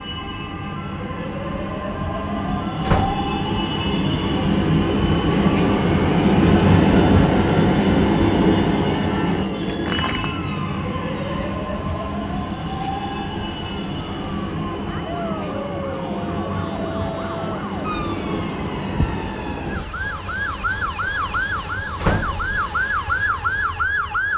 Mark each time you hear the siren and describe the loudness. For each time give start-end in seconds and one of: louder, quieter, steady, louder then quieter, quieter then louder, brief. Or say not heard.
0.0-24.3 louder.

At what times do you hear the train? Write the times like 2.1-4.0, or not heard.
0.0-24.3.